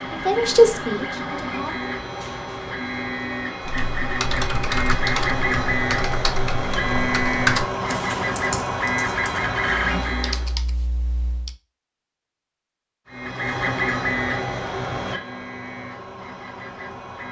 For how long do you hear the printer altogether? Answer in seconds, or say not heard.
15 s.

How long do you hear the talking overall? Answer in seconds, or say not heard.
2 s.